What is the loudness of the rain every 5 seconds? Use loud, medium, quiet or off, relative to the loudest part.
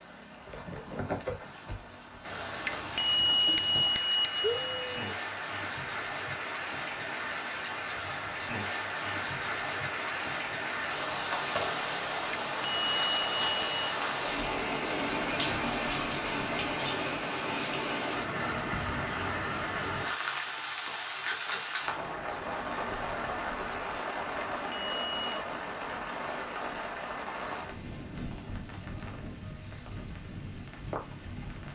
medium, loud, loud, loud, loud, medium, medium.